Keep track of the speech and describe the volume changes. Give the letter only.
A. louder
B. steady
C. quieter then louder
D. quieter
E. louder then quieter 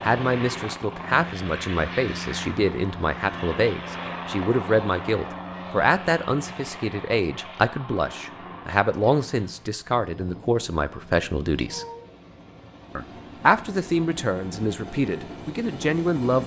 B.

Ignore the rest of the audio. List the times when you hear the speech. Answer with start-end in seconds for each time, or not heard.
0.0-11.8, 12.9-16.4.